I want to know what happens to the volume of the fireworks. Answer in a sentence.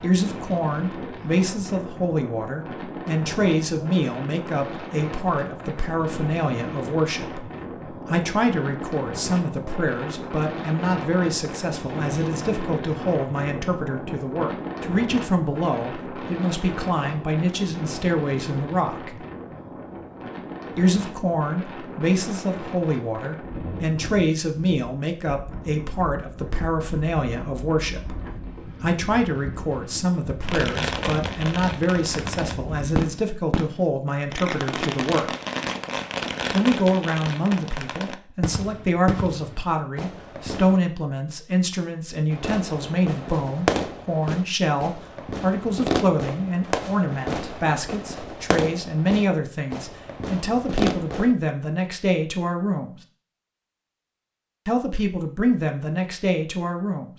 The volume of the fireworks stays about the same.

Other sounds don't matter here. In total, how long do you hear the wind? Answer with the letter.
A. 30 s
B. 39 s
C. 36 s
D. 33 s
D.